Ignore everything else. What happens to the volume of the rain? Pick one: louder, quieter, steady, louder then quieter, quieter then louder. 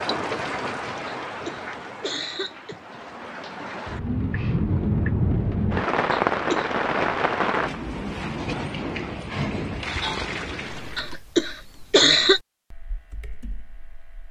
louder then quieter.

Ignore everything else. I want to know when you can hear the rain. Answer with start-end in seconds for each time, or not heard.
0.0-11.2.